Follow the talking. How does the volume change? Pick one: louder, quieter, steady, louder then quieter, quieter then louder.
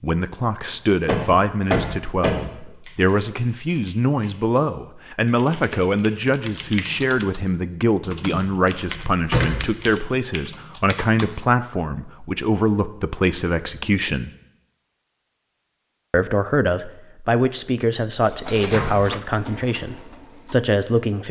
steady.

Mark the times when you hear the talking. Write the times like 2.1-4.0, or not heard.
0.0-14.3, 16.1-21.2.